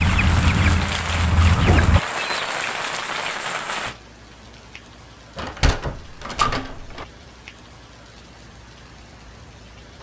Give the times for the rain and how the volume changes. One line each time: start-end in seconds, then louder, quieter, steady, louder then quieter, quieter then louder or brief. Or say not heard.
0.0-9.9 quieter.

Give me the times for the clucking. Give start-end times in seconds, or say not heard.
0.0-2.5.